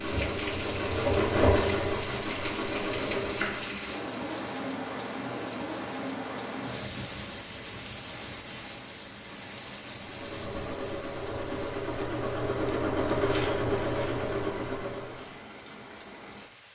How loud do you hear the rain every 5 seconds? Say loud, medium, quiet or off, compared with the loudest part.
loud, loud, medium, medium.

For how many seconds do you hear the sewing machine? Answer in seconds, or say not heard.
9 s.